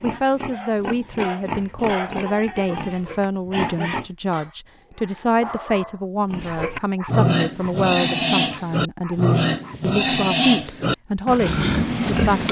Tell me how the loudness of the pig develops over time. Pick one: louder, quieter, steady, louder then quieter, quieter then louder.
louder.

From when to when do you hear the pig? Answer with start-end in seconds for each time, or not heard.
0.0-4.1, 6.3-12.4.